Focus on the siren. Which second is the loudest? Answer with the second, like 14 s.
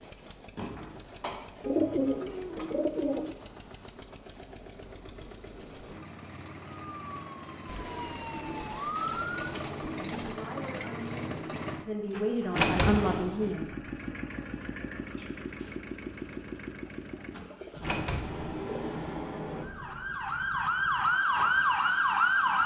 22 s.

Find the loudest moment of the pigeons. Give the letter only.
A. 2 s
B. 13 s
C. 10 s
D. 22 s
A.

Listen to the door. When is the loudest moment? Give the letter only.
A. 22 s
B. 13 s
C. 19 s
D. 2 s
B.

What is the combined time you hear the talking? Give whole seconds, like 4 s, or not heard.
4 s.